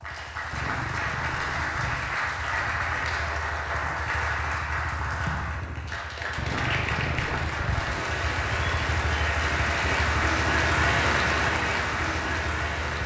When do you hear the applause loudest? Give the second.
11 s.